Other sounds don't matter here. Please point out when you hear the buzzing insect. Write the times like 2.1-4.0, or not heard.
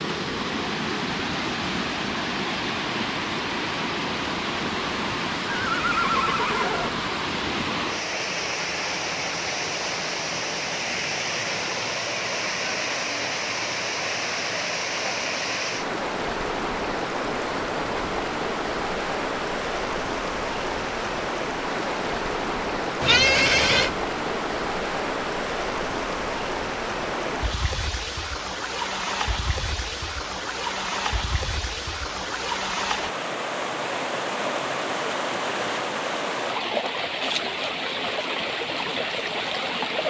not heard.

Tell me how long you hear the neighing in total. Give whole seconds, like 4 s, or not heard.
2 s.